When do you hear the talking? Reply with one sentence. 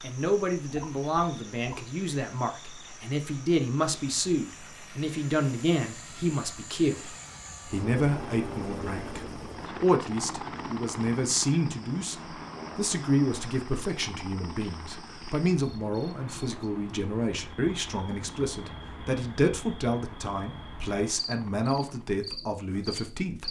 You can hear the talking from 0.0 to 23.4 s.